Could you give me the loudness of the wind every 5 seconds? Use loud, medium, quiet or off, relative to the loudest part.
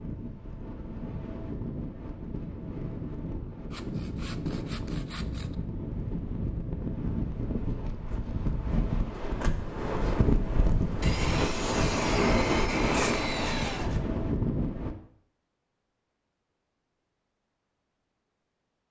medium, medium, loud, off.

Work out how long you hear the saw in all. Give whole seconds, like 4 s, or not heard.
5 s.